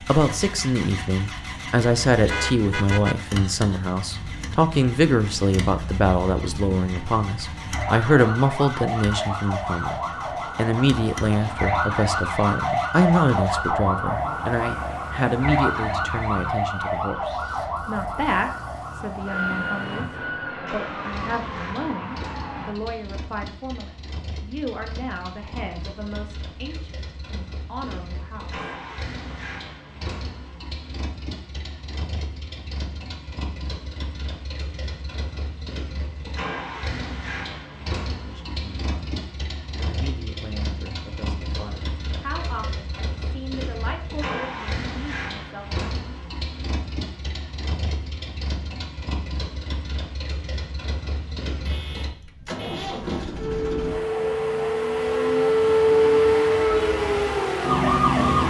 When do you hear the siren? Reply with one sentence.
You can hear the siren from 0.0 to 22.8 s and from 53.4 to 58.4 s.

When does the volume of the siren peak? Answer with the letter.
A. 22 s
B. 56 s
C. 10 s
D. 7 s
B.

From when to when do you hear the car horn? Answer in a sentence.
You can hear the car horn from 2.2 to 3.2 s and from 51.5 to 52.9 s.